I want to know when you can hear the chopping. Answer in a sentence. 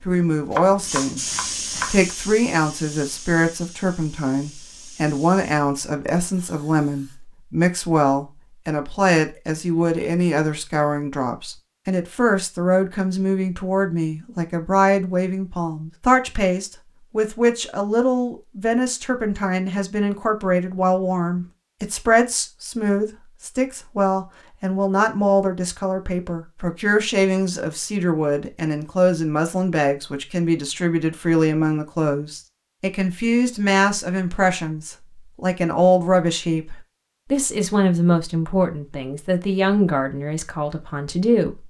You can hear the chopping from 0.5 to 2.0 s.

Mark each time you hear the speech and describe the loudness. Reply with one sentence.
You can hear the speech from 0.0 to 41.6 s, at a steady volume.